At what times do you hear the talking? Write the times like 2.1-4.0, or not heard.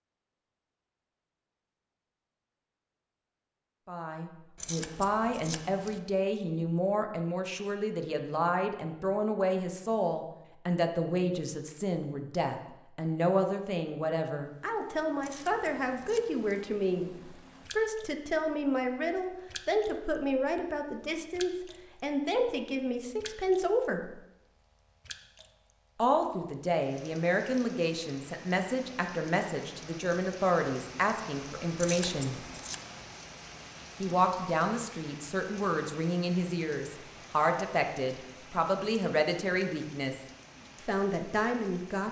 3.9-17.1, 17.7-24.2, 25.9-32.4, 34.0-42.0.